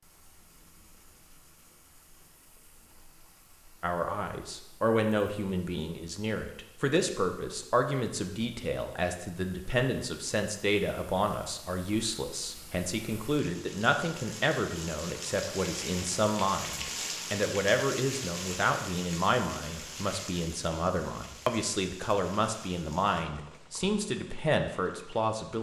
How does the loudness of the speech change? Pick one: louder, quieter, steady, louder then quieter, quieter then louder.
steady.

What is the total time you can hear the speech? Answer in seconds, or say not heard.
22 s.